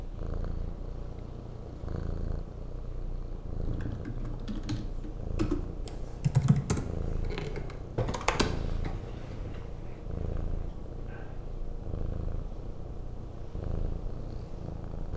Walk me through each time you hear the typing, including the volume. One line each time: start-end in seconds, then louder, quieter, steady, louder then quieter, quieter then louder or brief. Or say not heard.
3.6-9.6 louder then quieter.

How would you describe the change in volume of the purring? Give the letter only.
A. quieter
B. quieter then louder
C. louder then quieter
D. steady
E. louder
D.